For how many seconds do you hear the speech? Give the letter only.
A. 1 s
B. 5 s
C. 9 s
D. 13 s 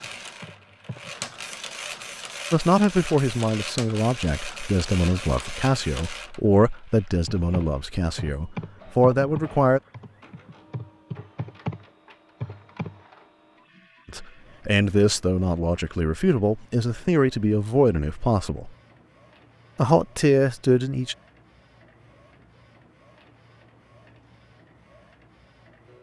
D.